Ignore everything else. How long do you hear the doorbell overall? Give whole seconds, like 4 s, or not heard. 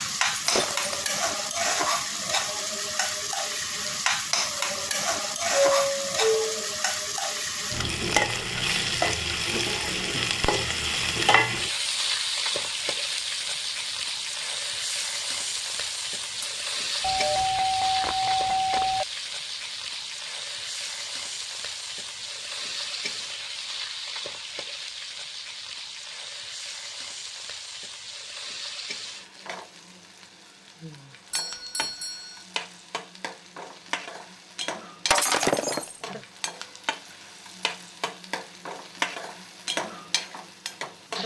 4 s.